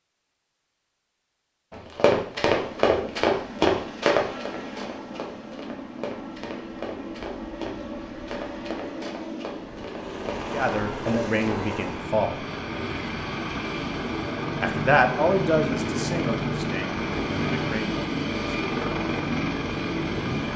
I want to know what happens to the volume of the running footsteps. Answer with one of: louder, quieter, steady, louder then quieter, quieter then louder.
quieter.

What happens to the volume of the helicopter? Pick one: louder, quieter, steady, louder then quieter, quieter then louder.
louder.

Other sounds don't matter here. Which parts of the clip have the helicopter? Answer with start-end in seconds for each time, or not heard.
2.5-20.5.